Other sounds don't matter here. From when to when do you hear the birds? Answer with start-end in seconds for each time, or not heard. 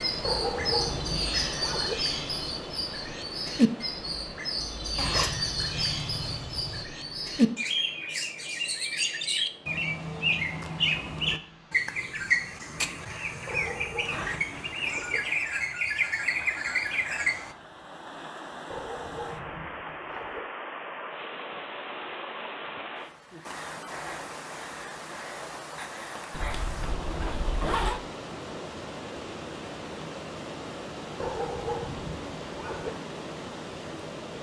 0.0-17.6.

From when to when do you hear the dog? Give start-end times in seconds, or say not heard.
0.2-1.9, 13.4-15.2, 18.7-20.4, 31.2-32.9.